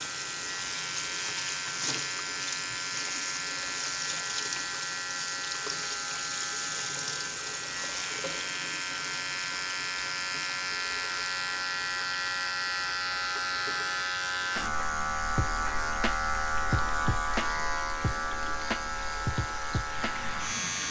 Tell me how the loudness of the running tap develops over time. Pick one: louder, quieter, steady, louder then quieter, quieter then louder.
quieter.